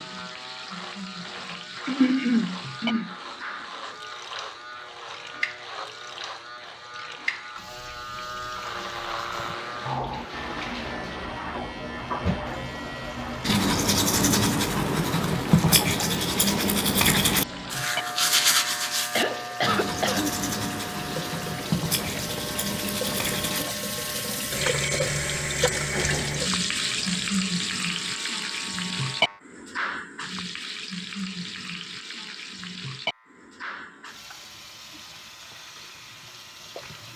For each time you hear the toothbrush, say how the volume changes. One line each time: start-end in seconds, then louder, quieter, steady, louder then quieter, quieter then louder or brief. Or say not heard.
13.4-23.6 quieter.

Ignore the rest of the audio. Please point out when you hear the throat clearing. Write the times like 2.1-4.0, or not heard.
1.9-3.1, 19.1-20.8, 25.7-26.4.